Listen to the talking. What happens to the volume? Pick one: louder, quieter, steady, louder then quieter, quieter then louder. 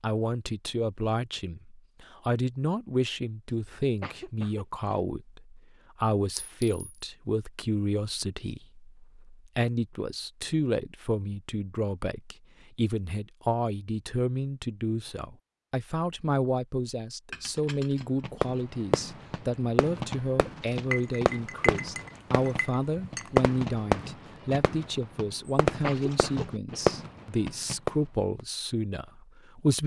steady.